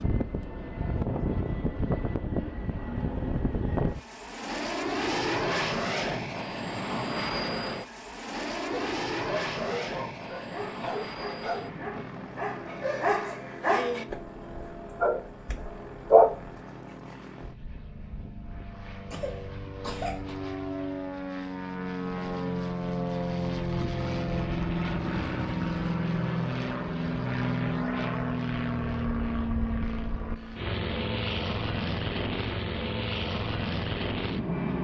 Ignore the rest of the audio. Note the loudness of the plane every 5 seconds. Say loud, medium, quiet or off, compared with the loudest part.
loud, loud, medium, quiet, loud, loud, loud.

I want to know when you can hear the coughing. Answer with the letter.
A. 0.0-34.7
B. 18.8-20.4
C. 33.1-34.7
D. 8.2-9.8
B.